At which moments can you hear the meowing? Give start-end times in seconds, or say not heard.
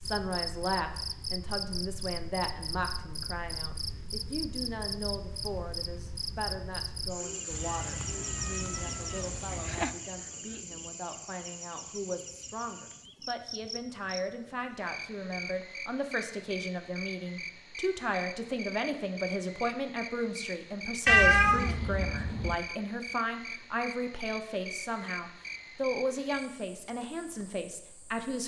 7.5-10.0, 21.1-22.6.